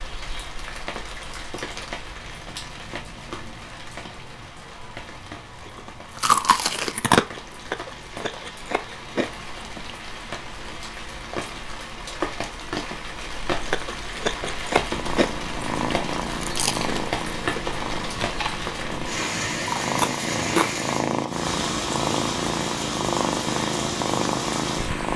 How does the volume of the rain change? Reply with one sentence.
The loudness of the rain goes up.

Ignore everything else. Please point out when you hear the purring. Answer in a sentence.
The purring can be heard from 14.9 to 25.1 s.